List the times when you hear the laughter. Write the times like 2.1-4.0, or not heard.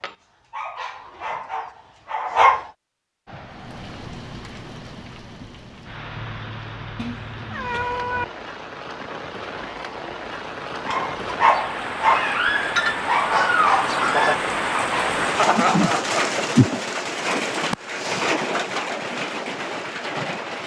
15.3-16.4.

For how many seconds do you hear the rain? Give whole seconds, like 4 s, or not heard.
17 s.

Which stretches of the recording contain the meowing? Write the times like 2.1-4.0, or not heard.
7.0-8.2.